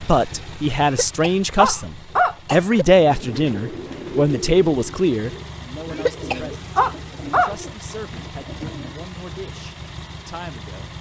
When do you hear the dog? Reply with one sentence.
The dog can be heard from 1.6 to 2.4 s and from 6.8 to 8.7 s.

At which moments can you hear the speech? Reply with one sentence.
You can hear the speech from 0.0 to 10.9 s.